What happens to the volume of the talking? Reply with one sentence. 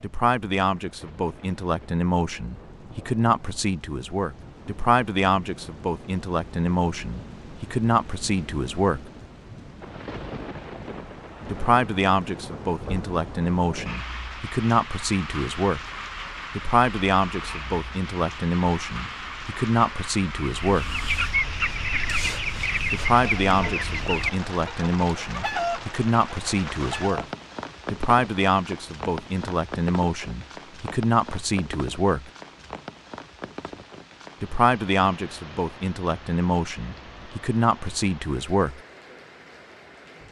The volume of the talking stays about the same.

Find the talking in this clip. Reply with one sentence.
The talking can be heard from 0.0 to 9.1 s, from 11.5 to 15.8 s, from 16.6 to 20.9 s, from 22.9 to 27.2 s, from 27.9 to 32.3 s and from 34.4 to 38.8 s.